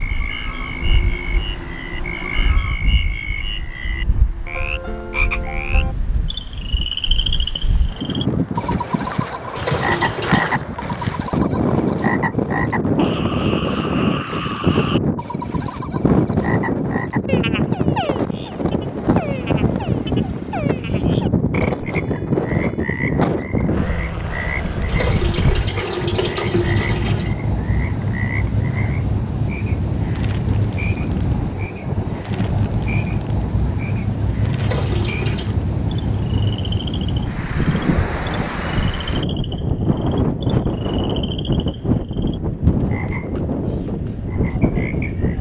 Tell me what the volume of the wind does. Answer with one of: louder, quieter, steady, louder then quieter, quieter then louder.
louder.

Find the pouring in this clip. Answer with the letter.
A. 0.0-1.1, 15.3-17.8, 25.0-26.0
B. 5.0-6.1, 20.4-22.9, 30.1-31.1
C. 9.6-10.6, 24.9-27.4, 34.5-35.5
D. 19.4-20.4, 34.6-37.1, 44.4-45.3
C.